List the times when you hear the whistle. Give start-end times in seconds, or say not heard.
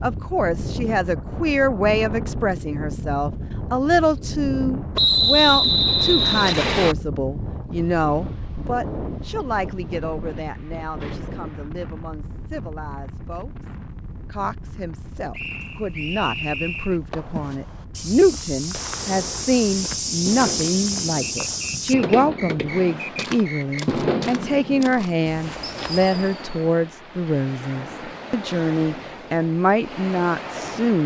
5.0-7.0, 15.3-17.0, 21.2-23.9.